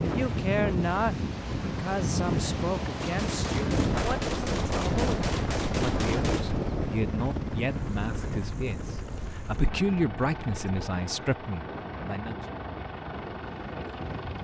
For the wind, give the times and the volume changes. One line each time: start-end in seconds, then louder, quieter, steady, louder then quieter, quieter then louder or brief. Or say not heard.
0.0-14.4 quieter.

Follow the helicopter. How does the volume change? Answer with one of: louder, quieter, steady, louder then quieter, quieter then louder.
louder then quieter.